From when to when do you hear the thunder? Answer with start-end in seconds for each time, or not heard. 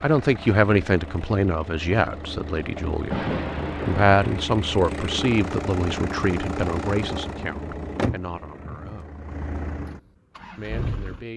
3.1-4.5.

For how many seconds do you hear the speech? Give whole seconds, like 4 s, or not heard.
9 s.